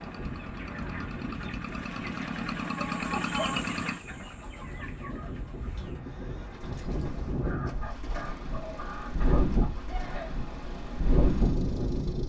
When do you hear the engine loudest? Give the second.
3 s.